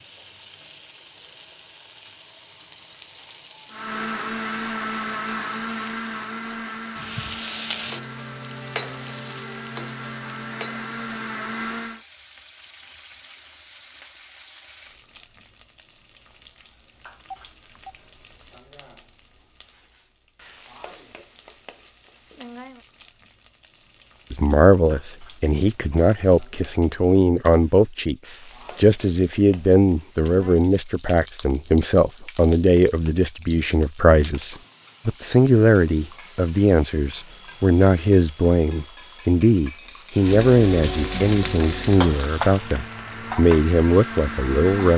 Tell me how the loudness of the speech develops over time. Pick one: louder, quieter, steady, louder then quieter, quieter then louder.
steady.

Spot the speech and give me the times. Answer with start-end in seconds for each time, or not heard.
24.3-44.9.